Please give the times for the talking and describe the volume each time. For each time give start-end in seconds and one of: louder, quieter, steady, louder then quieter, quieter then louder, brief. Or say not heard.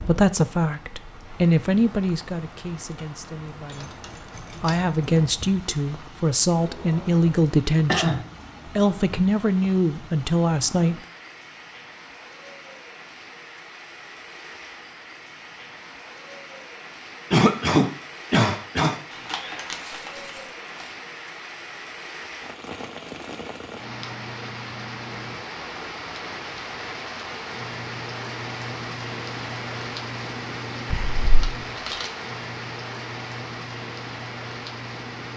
0.0-10.9 quieter then louder.